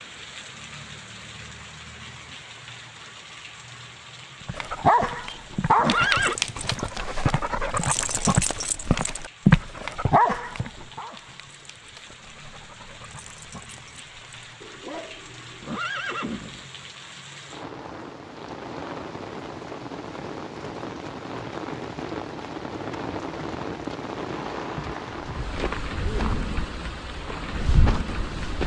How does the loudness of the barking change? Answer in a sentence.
The loudness of the barking goes down, then up.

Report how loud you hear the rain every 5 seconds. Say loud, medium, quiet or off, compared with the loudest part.
medium, quiet, quiet, medium, loud, loud.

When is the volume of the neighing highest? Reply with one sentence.
The loudest moment of the neighing is at 6 seconds.